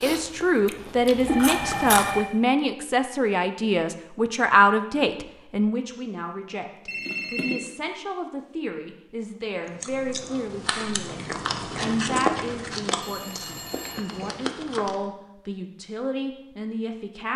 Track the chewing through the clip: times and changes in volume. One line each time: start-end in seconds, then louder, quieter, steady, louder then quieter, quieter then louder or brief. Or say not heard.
0.0-2.2 brief
9.7-15.1 louder then quieter.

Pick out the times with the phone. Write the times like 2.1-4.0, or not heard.
1.2-2.3, 6.8-7.7, 13.0-14.3.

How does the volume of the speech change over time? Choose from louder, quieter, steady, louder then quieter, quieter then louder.
quieter.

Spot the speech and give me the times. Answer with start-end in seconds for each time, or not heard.
0.0-17.3.